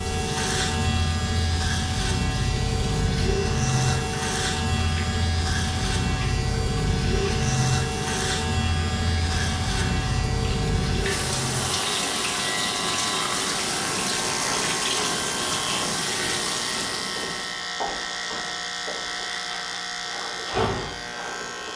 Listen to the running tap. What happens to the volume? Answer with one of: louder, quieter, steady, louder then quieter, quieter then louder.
louder.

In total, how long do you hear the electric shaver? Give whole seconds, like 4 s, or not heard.
22 s.